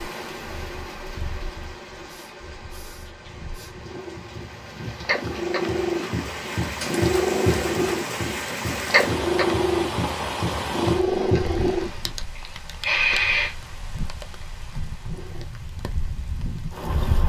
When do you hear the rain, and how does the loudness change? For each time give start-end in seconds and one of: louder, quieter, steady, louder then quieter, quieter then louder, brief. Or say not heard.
0.0-17.2 louder then quieter.